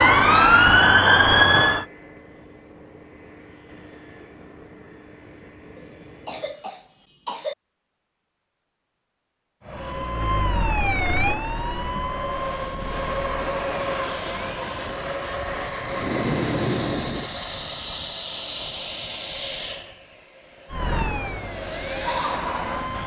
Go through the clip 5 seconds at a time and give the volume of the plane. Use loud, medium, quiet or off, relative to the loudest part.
quiet, quiet, loud, loud, medium.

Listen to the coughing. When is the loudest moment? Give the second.
7 s.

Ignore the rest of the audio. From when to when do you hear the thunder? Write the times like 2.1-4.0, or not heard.
15.8-17.3.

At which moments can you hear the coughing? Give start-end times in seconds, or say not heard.
5.8-7.5.